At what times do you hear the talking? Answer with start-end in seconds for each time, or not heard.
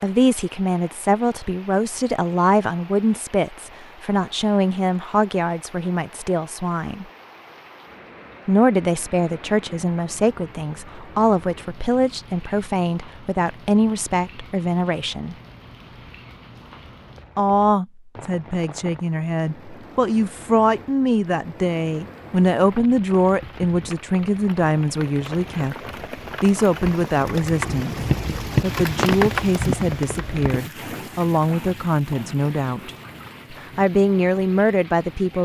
0.0-7.0, 8.4-15.3, 17.4-25.8, 26.4-32.9, 33.8-35.3.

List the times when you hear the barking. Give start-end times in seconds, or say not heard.
not heard.